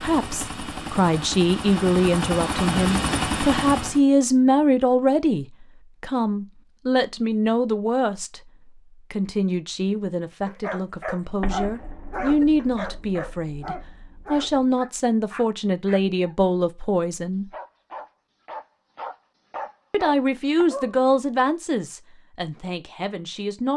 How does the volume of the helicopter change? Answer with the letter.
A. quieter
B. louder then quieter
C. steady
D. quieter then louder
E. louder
E.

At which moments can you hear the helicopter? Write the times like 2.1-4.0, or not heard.
0.0-4.0.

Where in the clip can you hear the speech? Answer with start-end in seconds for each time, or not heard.
0.0-8.4, 9.1-17.4, 19.9-23.7.